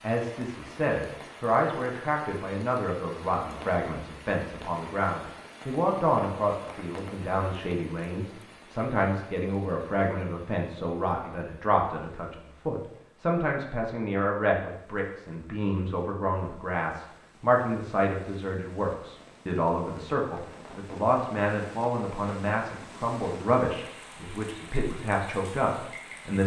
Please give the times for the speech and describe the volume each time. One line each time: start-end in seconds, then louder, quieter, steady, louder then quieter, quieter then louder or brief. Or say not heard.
0.0-26.4 steady.